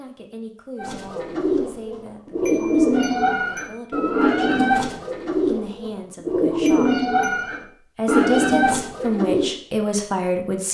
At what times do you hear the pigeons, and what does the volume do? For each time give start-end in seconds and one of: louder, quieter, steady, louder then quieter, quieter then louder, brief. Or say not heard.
0.8-9.6 steady.